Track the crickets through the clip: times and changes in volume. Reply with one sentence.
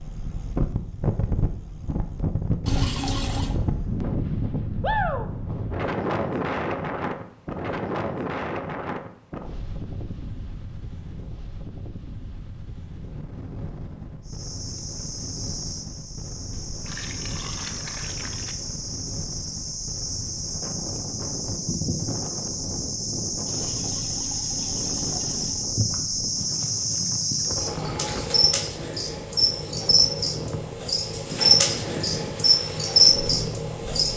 The crickets can be heard from 14.2 to 34.1 s, getting louder.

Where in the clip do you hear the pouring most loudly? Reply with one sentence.
The loudest moment of the pouring is at 3 seconds.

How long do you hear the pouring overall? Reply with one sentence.
You can hear the pouring for 5 seconds altogether.